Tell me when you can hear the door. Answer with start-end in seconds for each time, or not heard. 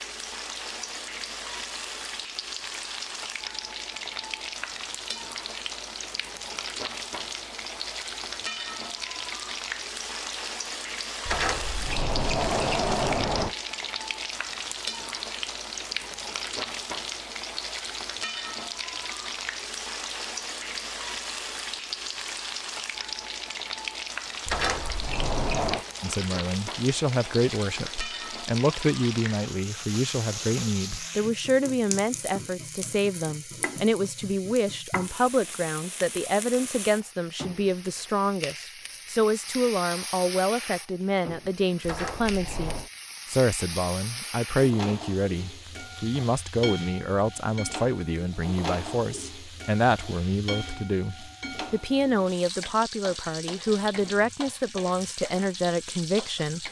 11.2-13.6, 24.4-25.9, 41.8-42.9.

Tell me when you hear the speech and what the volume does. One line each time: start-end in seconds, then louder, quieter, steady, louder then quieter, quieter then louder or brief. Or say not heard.
26.0-56.6 steady.